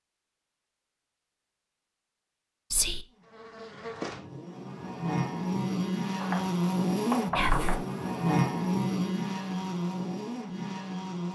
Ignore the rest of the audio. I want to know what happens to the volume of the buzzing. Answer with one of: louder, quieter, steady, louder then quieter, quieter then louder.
louder then quieter.